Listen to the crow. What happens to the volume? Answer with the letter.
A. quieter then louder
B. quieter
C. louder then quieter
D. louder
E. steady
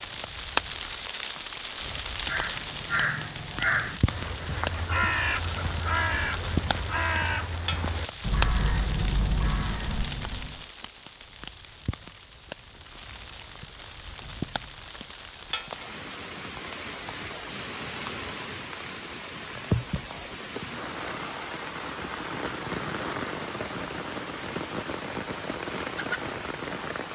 E.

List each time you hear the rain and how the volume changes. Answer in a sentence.
You can hear the rain from 0.0 to 27.0 s, getting quieter then louder.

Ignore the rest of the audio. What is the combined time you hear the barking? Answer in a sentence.
The barking can't be heard in this clip.